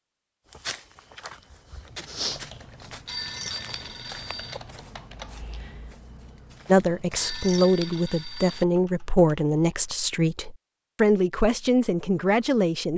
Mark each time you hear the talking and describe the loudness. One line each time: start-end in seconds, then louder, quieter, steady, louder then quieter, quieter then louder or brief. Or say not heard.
6.7-12.9 steady.